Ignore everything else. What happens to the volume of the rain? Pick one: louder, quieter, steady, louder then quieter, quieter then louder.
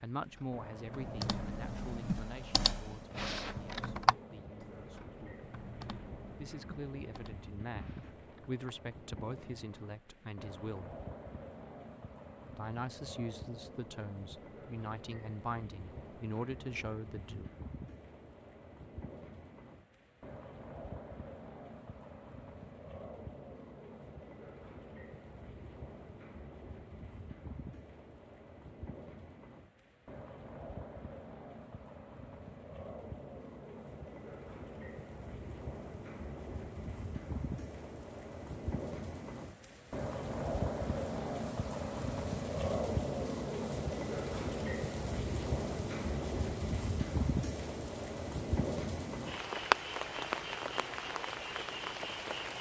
louder.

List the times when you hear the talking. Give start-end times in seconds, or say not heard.
0.0-5.4, 6.3-10.9, 12.6-17.5.